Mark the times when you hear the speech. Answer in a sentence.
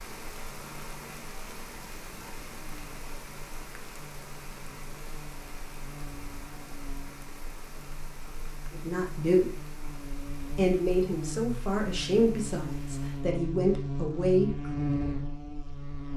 The speech can be heard from 8.7 to 9.8 s and from 10.5 to 14.5 s.